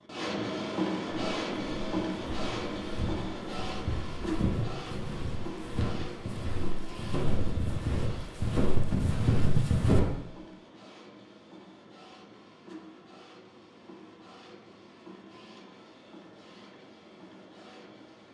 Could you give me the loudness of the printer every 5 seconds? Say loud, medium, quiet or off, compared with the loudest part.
loud, medium, quiet, quiet.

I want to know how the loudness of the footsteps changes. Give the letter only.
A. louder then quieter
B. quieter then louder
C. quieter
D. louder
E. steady
D.